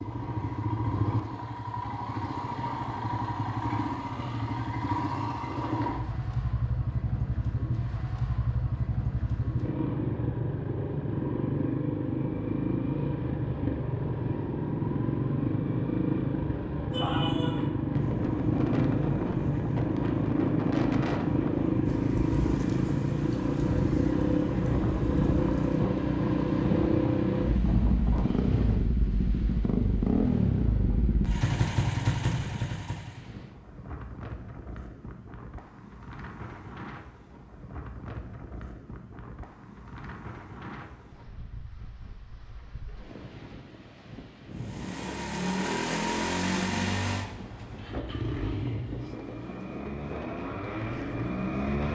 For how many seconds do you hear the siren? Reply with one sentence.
You can't hear the siren here.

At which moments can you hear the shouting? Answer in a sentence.
You can hear the shouting from 16.9 to 17.7 s.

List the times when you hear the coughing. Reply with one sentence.
You can't hear the coughing here.